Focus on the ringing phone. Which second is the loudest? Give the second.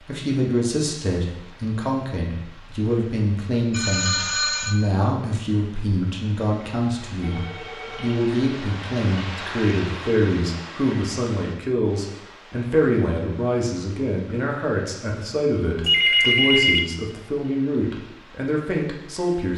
16 s.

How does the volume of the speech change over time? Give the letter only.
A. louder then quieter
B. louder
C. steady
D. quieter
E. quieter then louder
C.